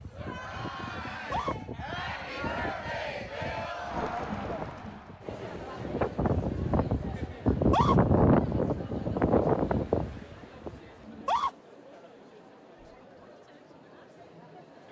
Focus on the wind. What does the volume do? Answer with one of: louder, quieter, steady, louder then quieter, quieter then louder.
louder.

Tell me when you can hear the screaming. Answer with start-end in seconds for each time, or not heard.
1.1-1.6, 7.5-8.0, 11.1-11.5.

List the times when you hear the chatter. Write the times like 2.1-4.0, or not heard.
0.0-14.8.